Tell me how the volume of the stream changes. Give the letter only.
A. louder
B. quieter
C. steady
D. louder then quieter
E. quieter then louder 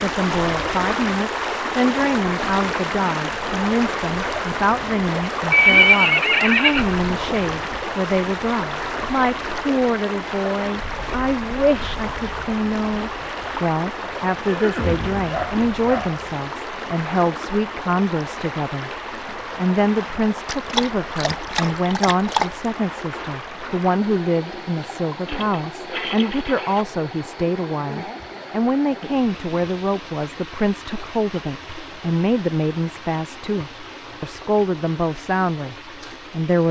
B.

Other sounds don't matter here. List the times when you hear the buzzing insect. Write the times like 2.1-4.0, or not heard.
not heard.